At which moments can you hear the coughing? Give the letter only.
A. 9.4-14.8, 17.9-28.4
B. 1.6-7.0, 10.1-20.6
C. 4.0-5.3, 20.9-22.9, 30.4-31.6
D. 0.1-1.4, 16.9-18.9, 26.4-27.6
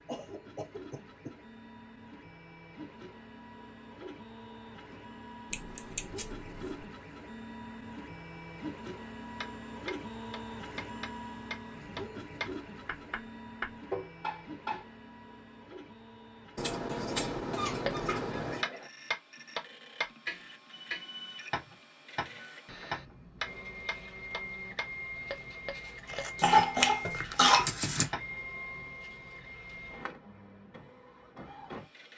D.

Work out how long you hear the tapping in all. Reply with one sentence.
You can hear the tapping for 16 seconds altogether.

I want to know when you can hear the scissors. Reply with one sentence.
The scissors can be heard from 5.5 to 6.8 s, from 16.6 to 18.6 s and from 26.1 to 28.1 s.